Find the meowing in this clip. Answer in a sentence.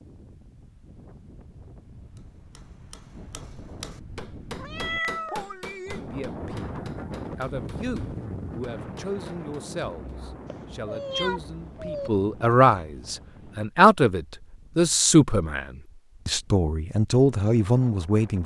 The meowing can be heard from 4.5 to 5.5 s and from 10.4 to 12.1 s.